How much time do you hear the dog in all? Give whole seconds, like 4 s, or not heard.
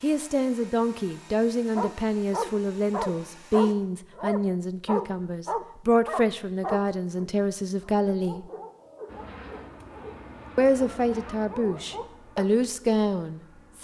11 s.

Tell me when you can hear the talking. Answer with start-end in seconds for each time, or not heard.
0.0-8.4, 10.6-13.8.